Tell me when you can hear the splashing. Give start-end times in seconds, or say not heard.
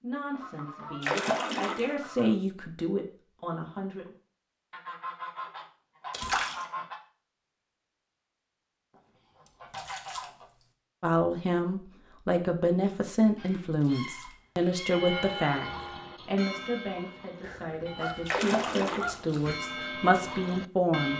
1.0-1.9, 6.1-6.7, 9.7-10.3, 13.8-14.3, 18.2-19.1.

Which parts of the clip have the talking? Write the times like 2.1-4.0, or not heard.
0.0-4.2, 11.0-21.1.